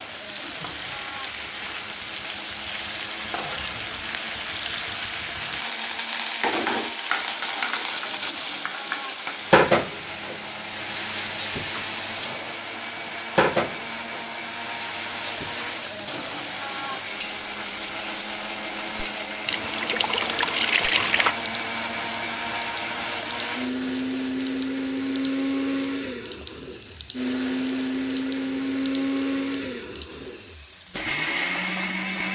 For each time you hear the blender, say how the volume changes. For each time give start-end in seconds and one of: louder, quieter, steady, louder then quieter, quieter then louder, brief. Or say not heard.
0.0-32.2 louder.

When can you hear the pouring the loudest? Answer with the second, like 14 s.
21 s.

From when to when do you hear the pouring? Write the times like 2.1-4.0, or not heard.
19.4-21.4.